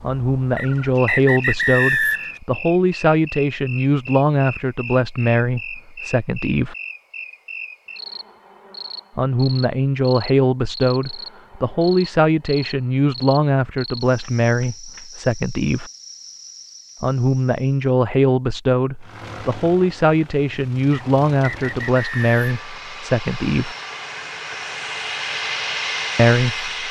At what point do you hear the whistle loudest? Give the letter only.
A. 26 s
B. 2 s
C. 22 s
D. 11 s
B.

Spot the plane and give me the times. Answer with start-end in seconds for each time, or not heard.
18.9-26.8.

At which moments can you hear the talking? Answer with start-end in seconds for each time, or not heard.
0.0-6.8, 9.2-15.9, 17.0-23.8, 26.1-26.7.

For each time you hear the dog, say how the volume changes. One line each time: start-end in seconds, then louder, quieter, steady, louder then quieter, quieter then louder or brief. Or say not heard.
not heard.